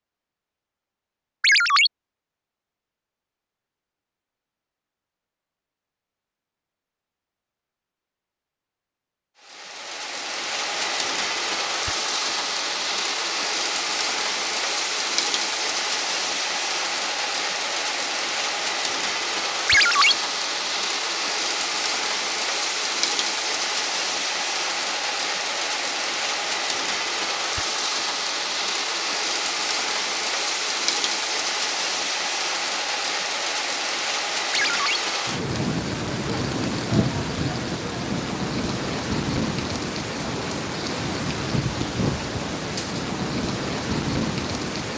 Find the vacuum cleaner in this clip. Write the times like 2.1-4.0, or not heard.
not heard.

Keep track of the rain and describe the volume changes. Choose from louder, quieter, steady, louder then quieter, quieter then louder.
steady.